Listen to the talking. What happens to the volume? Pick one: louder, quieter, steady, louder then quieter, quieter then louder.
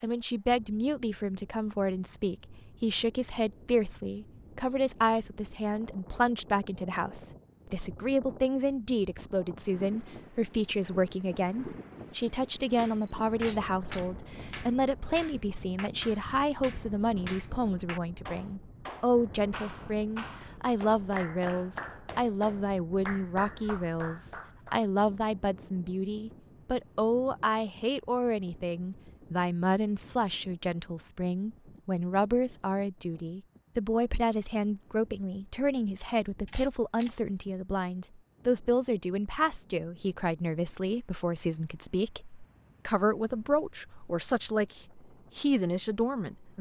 steady.